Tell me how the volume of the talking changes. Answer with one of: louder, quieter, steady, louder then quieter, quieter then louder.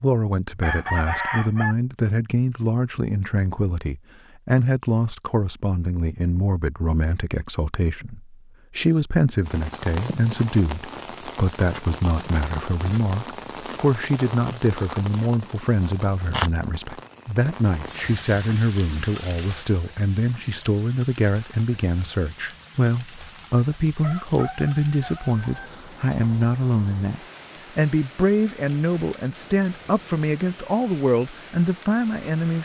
steady.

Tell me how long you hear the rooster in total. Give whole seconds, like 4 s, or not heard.
3 s.